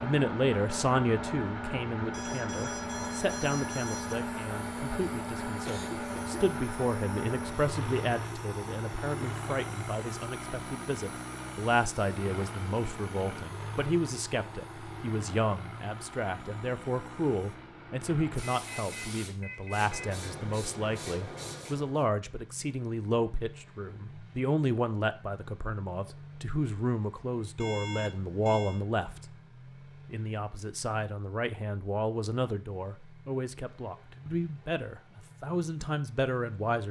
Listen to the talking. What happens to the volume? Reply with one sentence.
The loudness of the talking stays about the same.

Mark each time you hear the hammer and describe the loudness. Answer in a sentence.
The hammer can't be heard in this clip.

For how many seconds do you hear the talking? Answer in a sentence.
The talking can be heard for 36 seconds in total.